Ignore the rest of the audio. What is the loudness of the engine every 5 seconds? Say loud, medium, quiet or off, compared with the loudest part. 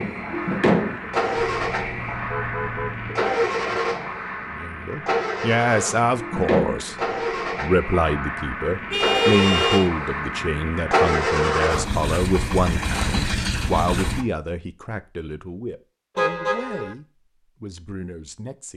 loud, loud, loud, off.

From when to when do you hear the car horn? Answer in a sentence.
You can hear the car horn from 1.4 to 3.2 s, from 8.9 to 9.9 s and from 16.1 to 16.9 s.